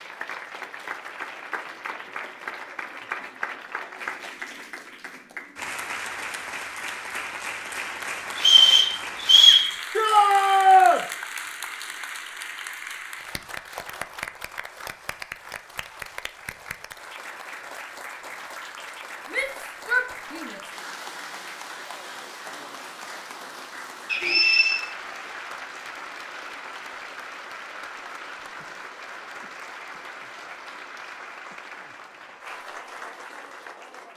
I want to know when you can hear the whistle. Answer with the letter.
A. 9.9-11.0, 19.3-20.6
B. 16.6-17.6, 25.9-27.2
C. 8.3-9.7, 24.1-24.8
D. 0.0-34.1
C.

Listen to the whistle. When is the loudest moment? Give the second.
9 s.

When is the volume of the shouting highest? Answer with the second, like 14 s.
11 s.